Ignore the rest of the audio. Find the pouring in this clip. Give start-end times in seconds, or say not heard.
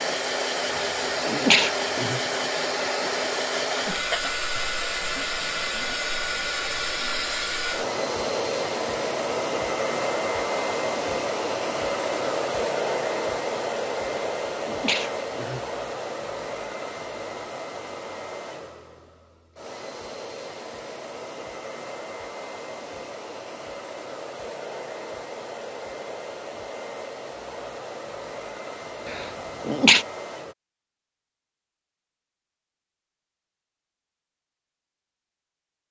not heard.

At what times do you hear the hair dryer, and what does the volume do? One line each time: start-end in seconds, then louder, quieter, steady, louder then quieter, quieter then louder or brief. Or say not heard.
0.0-30.6 quieter.